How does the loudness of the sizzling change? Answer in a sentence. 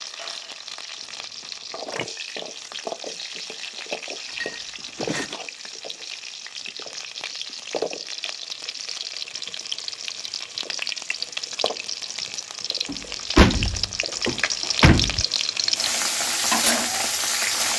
The loudness of the sizzling goes up.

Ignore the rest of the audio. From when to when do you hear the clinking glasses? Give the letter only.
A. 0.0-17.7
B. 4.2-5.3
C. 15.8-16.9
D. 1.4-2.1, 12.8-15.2
B.